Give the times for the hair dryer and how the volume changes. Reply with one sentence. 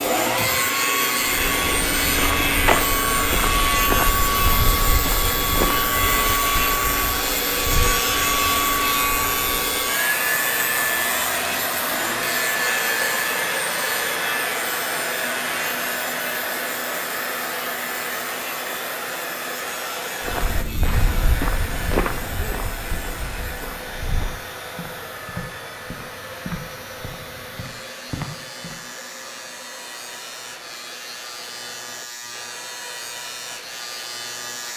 You can hear the hair dryer from 0.0 to 34.7 s, getting quieter.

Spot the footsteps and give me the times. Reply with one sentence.
You can hear the footsteps from 1.2 to 9.9 s and from 20.2 to 28.8 s.